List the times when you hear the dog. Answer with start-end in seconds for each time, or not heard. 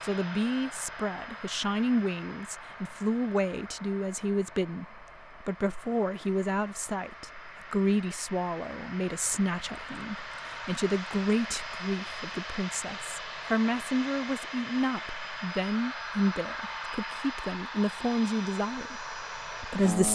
not heard.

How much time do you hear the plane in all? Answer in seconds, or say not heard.
20 s.